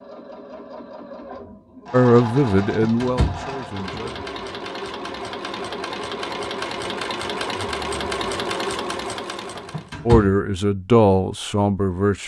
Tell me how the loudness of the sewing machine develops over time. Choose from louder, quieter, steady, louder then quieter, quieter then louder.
louder.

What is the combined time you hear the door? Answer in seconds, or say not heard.
2 s.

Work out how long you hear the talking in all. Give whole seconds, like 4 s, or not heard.
4 s.